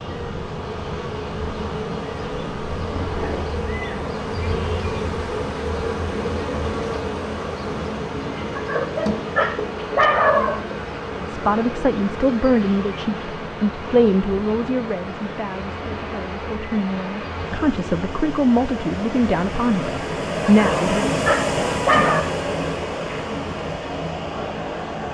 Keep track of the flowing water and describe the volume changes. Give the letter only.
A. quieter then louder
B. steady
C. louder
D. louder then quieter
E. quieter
C.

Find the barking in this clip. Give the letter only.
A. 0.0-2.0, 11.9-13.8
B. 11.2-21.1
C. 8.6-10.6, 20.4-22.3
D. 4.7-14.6
C.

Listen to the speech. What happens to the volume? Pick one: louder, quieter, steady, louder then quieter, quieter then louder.
quieter then louder.